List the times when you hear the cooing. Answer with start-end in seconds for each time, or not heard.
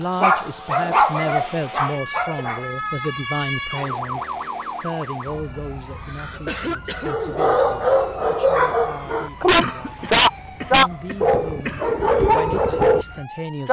not heard.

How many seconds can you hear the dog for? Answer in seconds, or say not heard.
9 s.